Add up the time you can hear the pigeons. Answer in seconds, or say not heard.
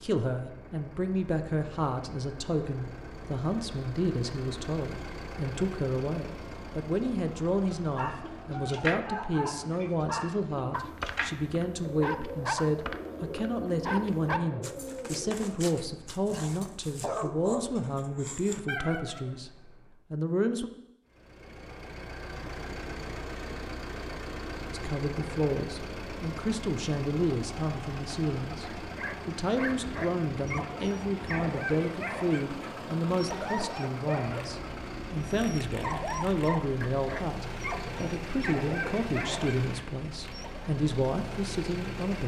8 s.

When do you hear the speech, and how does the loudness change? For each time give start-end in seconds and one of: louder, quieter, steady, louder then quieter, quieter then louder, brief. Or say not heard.
0.0-19.5 steady
20.1-20.7 brief
24.7-42.2 steady.